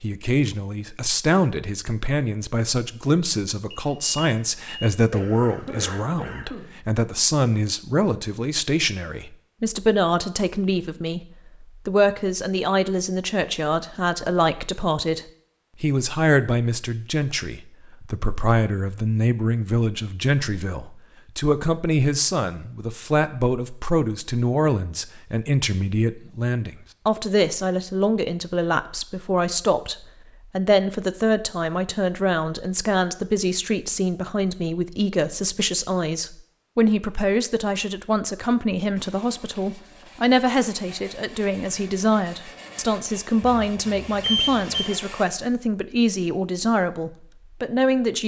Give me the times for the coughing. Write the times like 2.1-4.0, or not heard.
5.1-6.8.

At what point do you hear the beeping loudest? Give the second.
44 s.